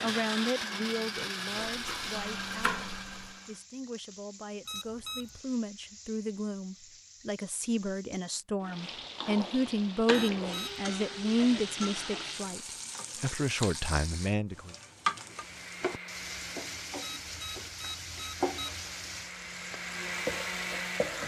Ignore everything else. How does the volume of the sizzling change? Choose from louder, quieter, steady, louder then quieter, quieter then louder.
louder.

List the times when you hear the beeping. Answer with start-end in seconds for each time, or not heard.
4.7-5.4, 10.1-10.8, 17.0-18.7.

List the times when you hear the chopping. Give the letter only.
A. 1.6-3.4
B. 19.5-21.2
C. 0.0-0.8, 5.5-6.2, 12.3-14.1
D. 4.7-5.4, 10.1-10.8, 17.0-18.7
A.